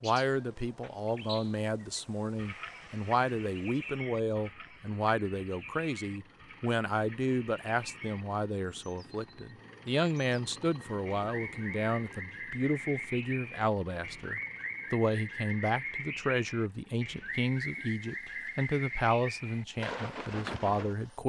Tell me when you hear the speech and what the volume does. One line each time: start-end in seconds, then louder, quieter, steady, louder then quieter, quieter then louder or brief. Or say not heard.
0.0-21.2 steady.